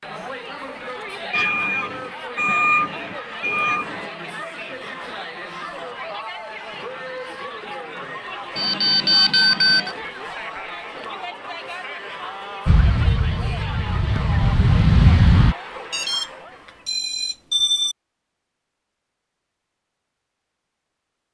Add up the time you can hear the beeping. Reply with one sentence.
You can hear the beeping for 6 seconds altogether.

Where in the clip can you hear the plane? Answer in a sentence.
The plane can be heard from 12.7 to 15.6 s.